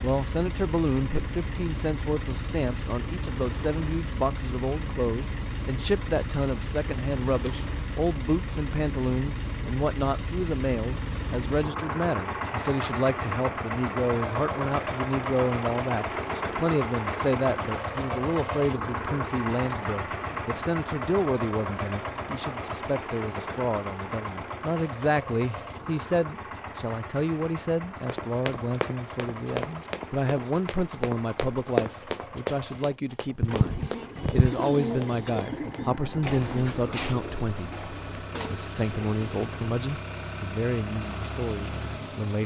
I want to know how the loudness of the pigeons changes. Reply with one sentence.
The loudness of the pigeons goes down.